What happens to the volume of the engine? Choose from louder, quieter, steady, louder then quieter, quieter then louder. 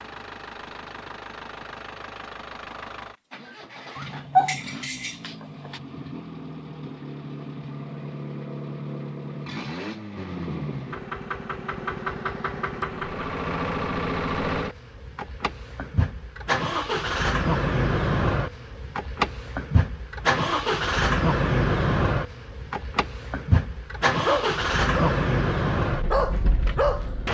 louder.